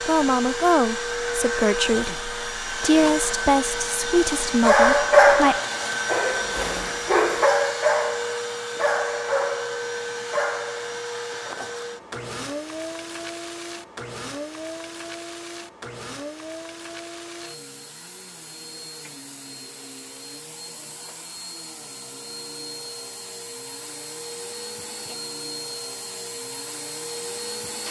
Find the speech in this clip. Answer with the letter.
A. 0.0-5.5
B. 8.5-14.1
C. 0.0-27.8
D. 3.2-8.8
A.